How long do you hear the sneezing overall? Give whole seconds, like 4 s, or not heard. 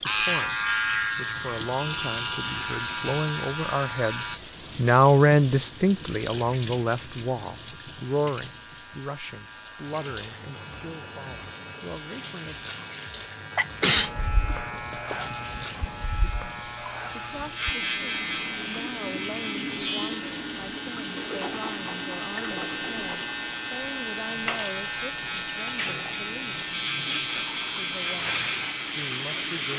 2 s.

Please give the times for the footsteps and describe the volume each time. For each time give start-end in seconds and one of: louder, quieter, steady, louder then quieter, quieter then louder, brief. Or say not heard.
not heard.